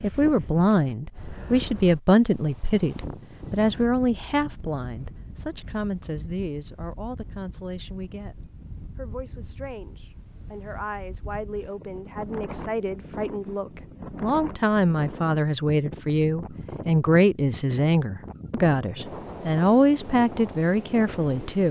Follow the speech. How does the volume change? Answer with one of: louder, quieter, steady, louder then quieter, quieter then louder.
quieter then louder.